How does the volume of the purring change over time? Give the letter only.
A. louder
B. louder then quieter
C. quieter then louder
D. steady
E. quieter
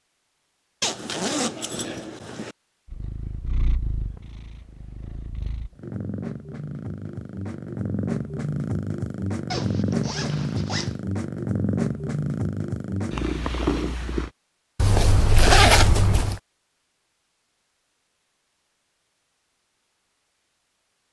A.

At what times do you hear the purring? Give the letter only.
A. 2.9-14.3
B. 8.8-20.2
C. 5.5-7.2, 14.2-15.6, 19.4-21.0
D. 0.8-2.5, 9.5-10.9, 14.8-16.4
A.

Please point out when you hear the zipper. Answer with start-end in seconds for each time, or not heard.
0.8-2.5, 9.5-10.9, 14.8-16.4.